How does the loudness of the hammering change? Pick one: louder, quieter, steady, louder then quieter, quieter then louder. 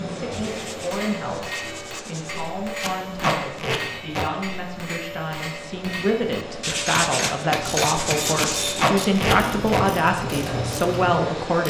louder.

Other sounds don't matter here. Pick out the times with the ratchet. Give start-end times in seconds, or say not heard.
7.5-11.6.